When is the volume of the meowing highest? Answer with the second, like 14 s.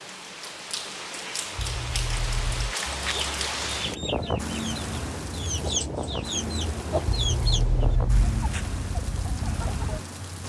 8 s.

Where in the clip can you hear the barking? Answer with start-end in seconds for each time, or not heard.
not heard.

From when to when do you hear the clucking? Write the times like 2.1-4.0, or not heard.
2.9-10.0.